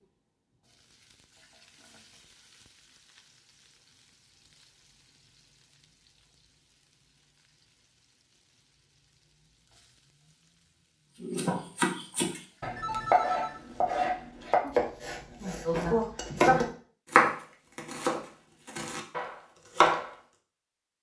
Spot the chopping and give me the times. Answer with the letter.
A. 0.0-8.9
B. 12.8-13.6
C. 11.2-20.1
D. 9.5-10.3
C.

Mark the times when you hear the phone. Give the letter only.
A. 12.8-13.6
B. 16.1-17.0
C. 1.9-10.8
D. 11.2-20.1
A.